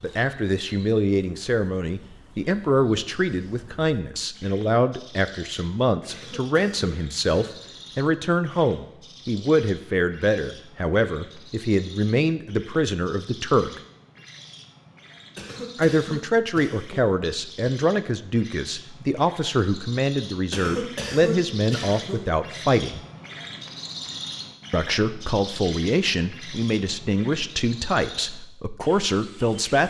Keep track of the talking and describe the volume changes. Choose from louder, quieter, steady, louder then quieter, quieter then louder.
steady.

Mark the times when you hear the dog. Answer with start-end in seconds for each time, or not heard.
not heard.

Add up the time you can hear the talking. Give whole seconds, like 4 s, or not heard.
26 s.